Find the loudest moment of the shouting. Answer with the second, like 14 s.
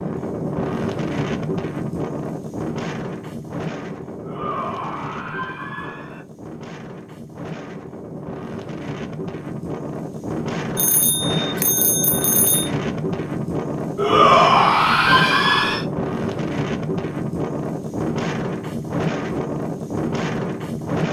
14 s.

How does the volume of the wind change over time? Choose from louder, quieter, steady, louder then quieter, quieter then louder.
quieter then louder.